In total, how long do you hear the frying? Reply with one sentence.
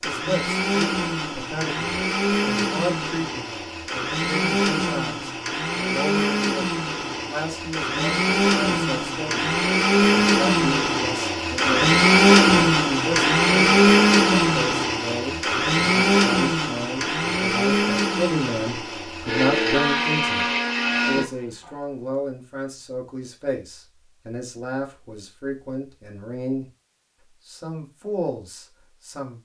You can't hear the frying here.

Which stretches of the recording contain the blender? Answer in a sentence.
You can hear the blender from 0.0 to 21.7 s.